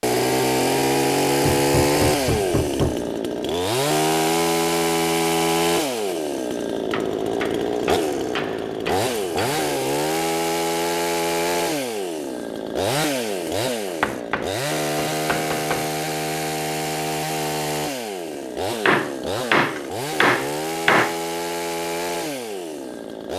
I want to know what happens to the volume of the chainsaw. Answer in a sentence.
The volume of the chainsaw goes down.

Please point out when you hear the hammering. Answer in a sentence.
The hammering can be heard from 1.4 to 3.1 s, from 6.9 to 9.7 s, from 13.8 to 15.8 s and from 18.9 to 21.1 s.